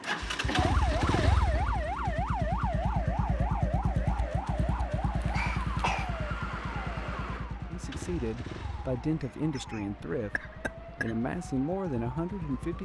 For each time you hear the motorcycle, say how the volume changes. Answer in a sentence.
The motorcycle can be heard from 0.0 to 12.8 s, getting quieter.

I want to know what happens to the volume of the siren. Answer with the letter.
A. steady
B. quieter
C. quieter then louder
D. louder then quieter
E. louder
B.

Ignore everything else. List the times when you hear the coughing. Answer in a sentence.
You can hear the coughing from 0.5 to 1.6 s, from 5.2 to 6.1 s and from 9.5 to 11.2 s.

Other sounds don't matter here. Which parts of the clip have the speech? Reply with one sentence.
The speech can be heard from 7.7 to 12.8 s.